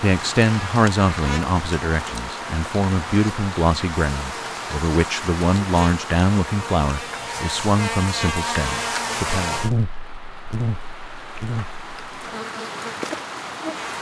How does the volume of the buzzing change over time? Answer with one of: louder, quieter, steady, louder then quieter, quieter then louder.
louder then quieter.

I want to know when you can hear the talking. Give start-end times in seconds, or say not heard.
0.0-9.6.